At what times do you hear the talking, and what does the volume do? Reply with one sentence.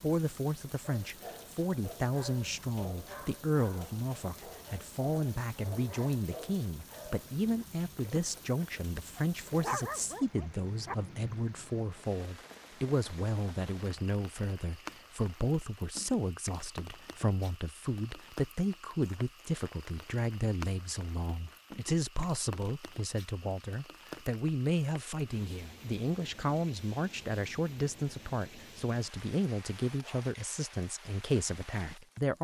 The talking can be heard from 0.0 to 32.3 s, at a steady volume.